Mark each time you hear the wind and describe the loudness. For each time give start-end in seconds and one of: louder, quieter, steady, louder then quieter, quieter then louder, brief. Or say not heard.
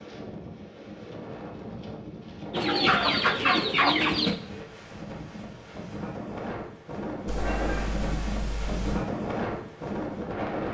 0.0-10.6 louder.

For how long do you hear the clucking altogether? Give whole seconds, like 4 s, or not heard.
2 s.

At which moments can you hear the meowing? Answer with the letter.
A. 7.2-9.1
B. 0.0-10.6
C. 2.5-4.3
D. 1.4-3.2
A.